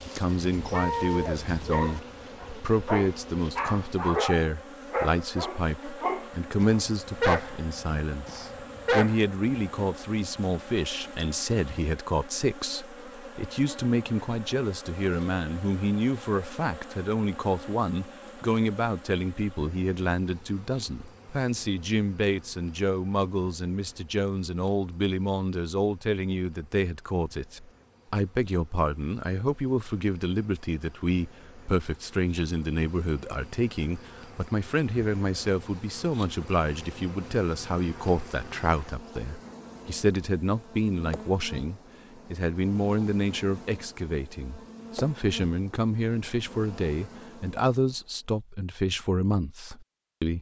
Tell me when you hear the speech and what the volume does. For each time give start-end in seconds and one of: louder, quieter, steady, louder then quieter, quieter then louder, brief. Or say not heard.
0.1-50.3 steady.